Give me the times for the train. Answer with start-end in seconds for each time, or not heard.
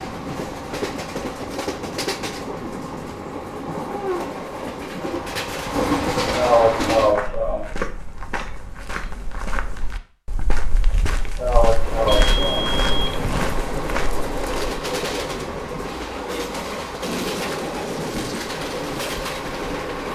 0.0-7.2, 11.7-20.1.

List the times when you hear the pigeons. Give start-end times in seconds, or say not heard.
not heard.